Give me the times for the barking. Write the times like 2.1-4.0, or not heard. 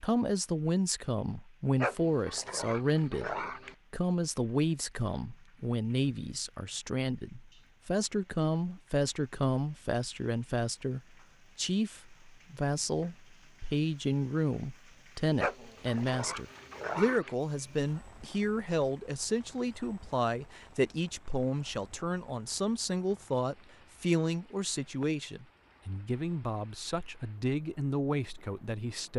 1.8-3.8, 15.3-17.4.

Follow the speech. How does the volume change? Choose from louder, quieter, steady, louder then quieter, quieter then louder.
steady.